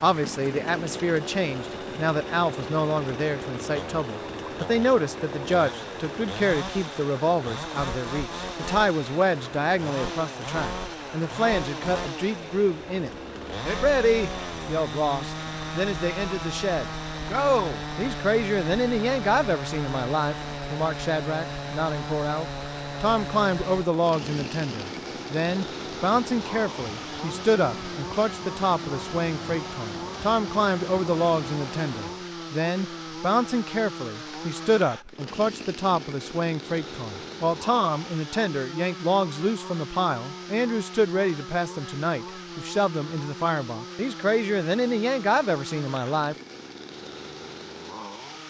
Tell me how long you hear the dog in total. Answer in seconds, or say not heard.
not heard.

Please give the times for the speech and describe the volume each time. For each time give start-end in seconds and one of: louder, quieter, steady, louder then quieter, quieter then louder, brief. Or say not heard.
0.0-46.4 steady.